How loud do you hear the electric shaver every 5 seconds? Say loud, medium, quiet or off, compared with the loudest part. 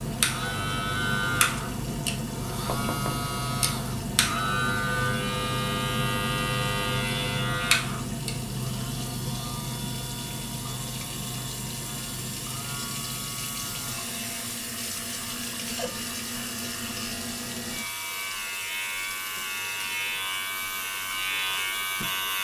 loud, loud, medium, medium, loud.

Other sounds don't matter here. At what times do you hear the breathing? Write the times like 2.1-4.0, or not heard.
not heard.